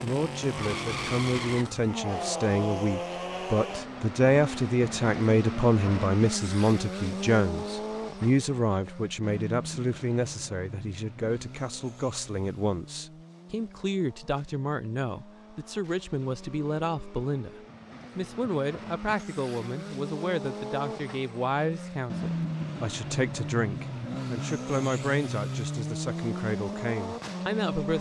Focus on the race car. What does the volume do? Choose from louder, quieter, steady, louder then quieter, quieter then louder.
quieter then louder.